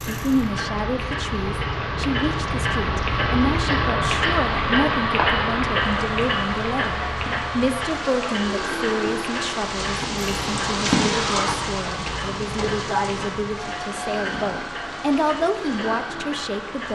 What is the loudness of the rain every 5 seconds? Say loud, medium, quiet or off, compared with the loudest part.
quiet, medium, loud, quiet.